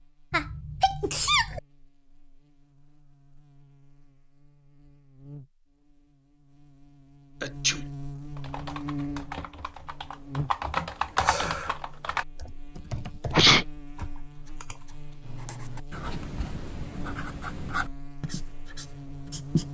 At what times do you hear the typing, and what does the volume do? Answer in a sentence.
You can hear the typing from 8.3 to 14.9 s, getting louder then quieter.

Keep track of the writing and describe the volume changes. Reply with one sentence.
The loudness of the writing goes up, then down.